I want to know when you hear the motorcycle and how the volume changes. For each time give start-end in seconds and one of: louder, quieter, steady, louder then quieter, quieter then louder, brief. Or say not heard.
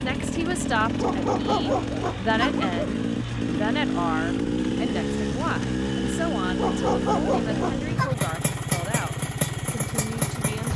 0.0-10.7 steady.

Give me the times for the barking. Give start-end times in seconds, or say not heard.
1.0-2.9, 6.5-8.2.